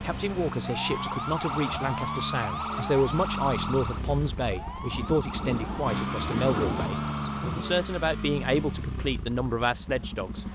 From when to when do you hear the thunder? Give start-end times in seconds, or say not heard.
4.9-7.8.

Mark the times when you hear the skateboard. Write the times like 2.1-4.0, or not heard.
not heard.